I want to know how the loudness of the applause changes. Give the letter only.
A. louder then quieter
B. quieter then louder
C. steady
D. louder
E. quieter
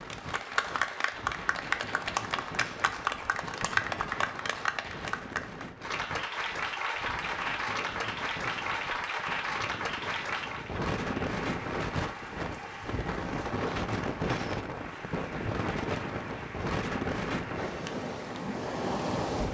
E.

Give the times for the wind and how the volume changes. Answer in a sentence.
The wind can be heard from 0.0 to 19.4 s, getting louder.